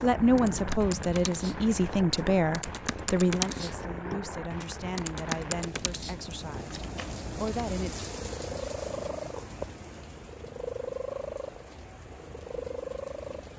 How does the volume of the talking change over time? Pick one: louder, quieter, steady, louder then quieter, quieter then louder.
quieter.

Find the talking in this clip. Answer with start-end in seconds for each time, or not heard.
0.0-8.1.